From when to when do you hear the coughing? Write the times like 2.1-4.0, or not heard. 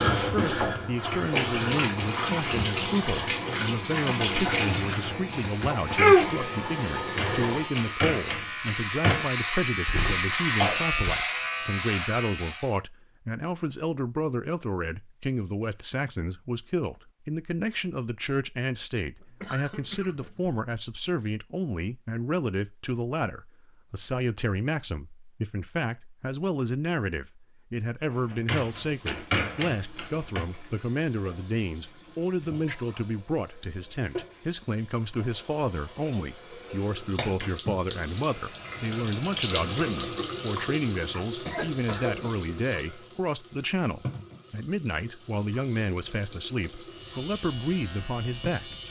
9.8-11.2, 19.2-20.6, 41.5-42.4.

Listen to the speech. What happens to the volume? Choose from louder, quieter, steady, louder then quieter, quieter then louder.
steady.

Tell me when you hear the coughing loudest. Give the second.
11 s.